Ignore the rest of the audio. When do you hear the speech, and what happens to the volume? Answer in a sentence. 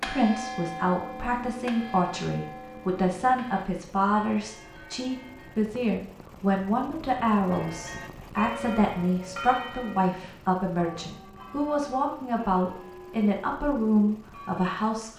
You can hear the speech from 0.1 to 15.1 s, at a steady volume.